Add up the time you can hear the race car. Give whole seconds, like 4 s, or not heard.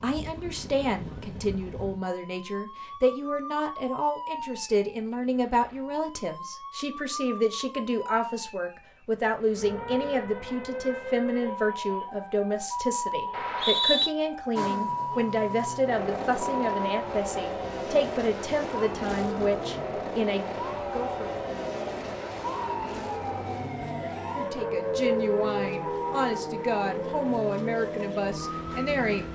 15 s.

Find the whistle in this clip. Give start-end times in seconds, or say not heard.
13.3-14.1.